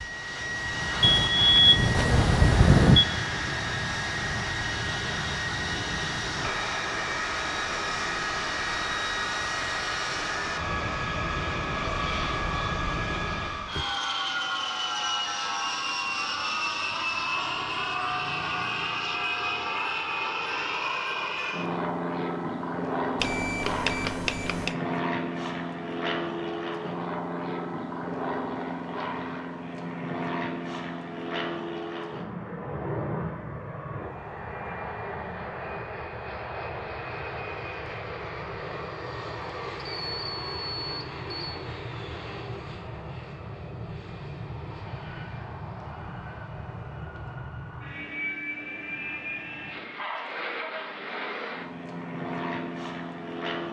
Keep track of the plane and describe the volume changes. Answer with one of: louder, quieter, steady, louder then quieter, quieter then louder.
quieter.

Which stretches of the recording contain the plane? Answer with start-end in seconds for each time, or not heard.
0.0-53.6.